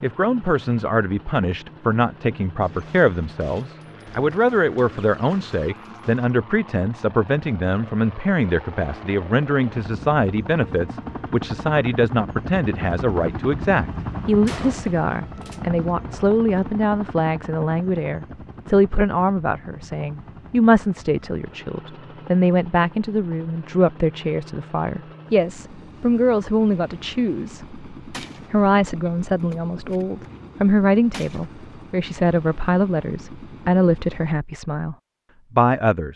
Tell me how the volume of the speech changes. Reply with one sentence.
The loudness of the speech stays about the same.